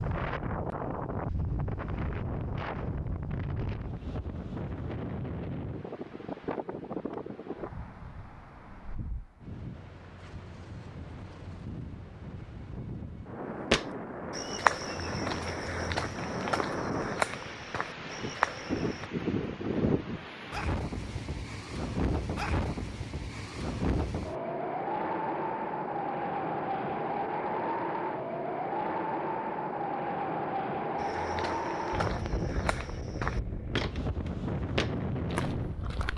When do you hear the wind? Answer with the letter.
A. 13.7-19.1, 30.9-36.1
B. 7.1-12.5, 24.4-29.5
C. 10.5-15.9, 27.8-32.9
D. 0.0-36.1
D.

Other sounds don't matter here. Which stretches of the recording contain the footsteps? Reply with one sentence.
You can hear the footsteps from 13.7 to 19.1 s and from 30.9 to 36.1 s.